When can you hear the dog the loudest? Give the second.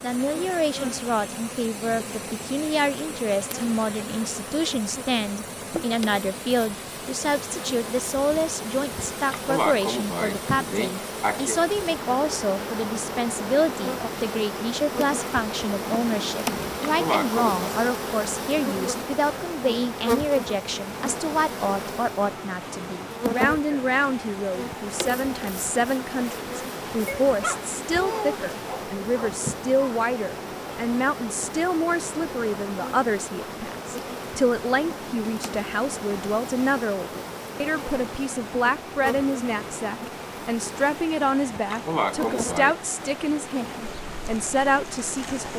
28 s.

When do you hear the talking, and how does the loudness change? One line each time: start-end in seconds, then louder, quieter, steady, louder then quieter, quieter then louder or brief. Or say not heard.
0.0-45.5 steady.